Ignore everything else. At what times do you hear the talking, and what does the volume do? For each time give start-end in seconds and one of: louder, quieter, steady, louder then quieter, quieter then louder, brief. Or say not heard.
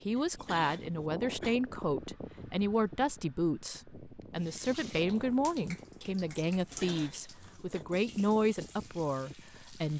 0.1-9.9 steady.